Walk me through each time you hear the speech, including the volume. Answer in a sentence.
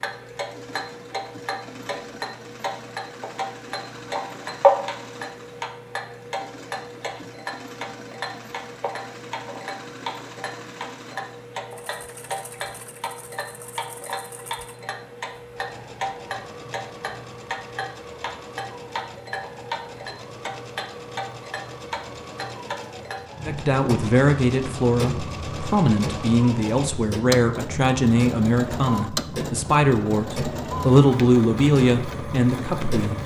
You can hear the speech from 23.4 to 33.2 s, at a steady volume.